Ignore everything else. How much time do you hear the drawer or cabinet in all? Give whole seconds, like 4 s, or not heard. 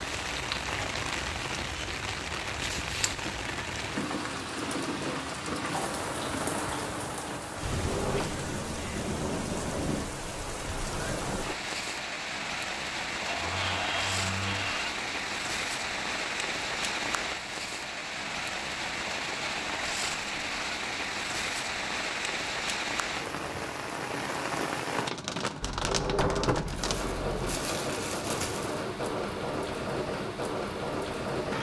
4 s.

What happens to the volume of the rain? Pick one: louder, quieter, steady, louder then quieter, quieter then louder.
steady.